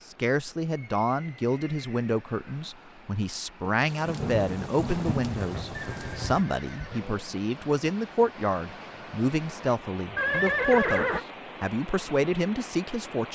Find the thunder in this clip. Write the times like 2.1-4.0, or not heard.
3.7-6.5.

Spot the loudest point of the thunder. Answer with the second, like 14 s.
4 s.